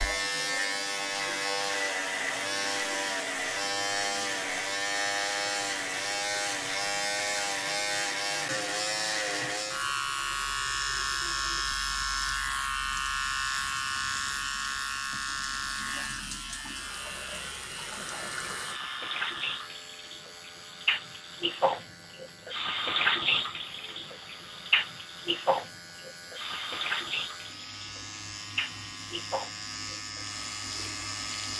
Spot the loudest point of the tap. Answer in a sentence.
The loudest moment of the tap is at 23 seconds.